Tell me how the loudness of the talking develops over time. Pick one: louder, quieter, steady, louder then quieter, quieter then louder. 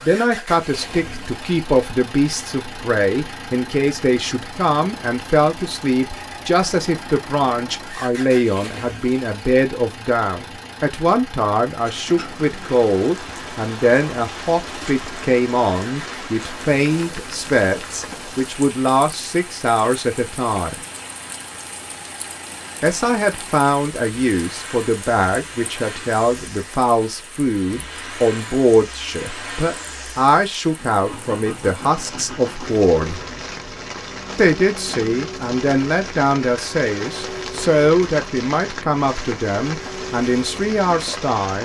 steady.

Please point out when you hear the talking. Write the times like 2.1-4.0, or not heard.
0.0-20.8, 22.8-33.2, 34.4-41.6.